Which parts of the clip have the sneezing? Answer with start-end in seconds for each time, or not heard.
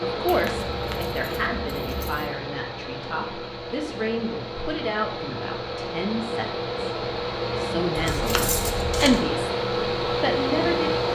not heard.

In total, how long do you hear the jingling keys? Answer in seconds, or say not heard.
3 s.